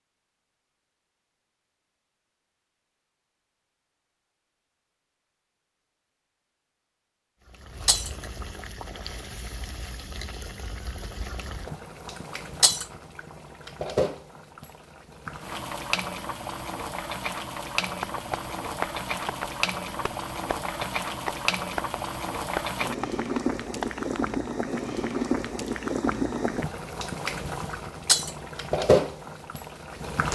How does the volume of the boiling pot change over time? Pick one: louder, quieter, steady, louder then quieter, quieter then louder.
louder.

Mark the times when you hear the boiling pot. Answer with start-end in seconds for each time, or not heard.
7.5-30.3.